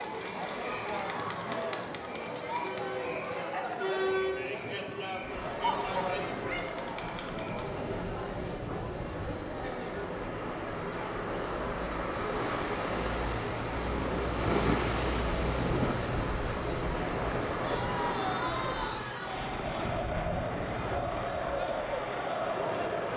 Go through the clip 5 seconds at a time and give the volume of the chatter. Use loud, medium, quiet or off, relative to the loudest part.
loud, loud, medium, loud, loud.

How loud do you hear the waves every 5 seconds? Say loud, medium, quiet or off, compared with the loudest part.
off, medium, loud, loud, medium.